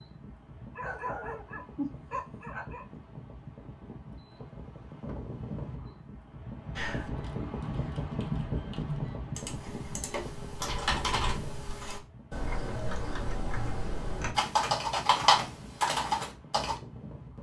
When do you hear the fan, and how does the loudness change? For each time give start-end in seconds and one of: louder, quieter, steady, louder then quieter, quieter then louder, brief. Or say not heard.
0.0-17.3 louder then quieter.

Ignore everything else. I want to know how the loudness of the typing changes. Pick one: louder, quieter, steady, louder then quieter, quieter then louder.
louder.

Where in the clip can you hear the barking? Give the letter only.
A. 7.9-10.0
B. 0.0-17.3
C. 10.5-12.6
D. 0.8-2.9
D.